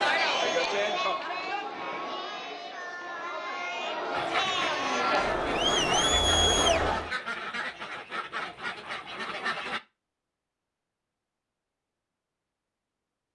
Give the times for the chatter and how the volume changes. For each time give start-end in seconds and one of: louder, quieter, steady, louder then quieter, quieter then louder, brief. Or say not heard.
0.0-7.2 quieter then louder.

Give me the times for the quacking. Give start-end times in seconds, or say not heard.
4.1-9.8.